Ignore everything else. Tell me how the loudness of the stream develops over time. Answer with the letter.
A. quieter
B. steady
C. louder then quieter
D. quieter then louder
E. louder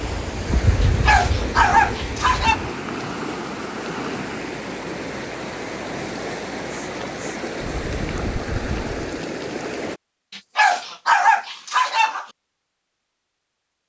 B.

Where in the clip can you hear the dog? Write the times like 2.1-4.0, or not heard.
0.8-2.5, 10.3-12.2.